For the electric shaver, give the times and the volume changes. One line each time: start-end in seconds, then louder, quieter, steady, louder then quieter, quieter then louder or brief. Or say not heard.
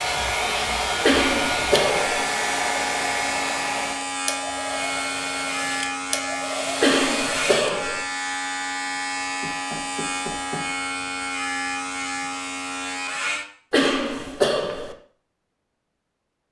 0.0-13.4 steady.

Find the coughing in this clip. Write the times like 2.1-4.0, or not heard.
1.0-2.2, 6.8-8.0, 13.7-14.9.